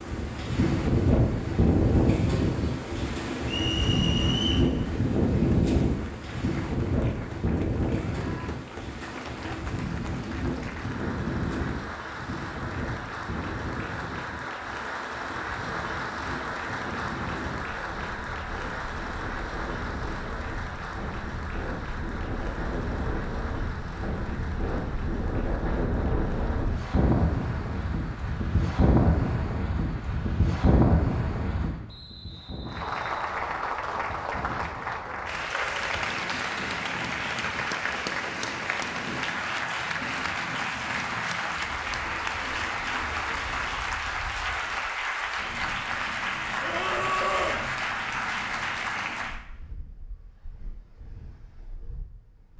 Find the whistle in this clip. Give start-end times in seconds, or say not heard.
3.5-4.7, 31.9-33.1.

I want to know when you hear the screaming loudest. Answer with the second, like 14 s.
47 s.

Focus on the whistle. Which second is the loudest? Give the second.
4 s.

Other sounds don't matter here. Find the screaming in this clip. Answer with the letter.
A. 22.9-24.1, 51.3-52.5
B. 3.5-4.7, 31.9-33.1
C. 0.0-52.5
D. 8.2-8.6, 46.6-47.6
D.